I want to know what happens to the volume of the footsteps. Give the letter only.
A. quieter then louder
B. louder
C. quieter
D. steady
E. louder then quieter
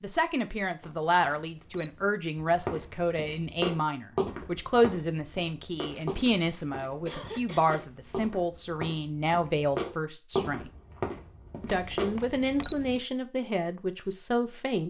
A.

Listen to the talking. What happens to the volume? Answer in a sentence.
The loudness of the talking stays about the same.